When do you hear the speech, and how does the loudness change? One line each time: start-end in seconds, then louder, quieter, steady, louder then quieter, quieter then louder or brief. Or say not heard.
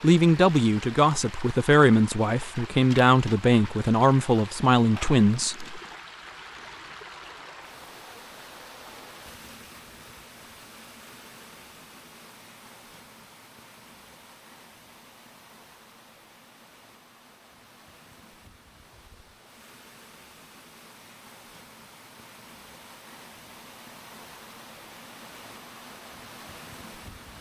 0.0-5.8 steady.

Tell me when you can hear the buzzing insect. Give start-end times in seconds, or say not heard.
not heard.